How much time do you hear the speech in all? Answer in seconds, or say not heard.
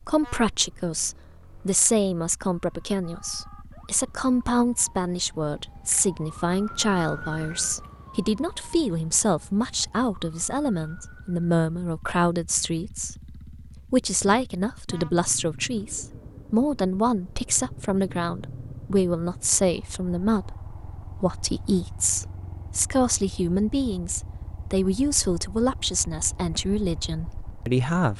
28 s.